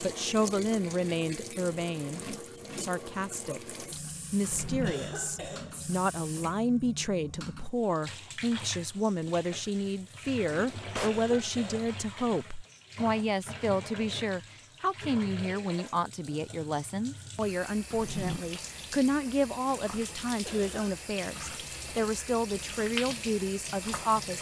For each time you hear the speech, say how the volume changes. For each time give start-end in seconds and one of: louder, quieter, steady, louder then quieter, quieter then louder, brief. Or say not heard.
0.0-24.3 steady.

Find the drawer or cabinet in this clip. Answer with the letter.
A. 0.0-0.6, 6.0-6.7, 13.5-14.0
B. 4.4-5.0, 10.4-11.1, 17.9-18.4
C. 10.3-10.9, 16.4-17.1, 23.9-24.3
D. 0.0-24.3
B.